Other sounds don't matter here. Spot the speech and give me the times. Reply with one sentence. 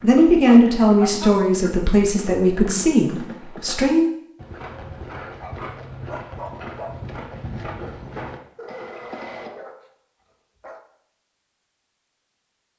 You can hear the speech from 0.0 to 4.1 s.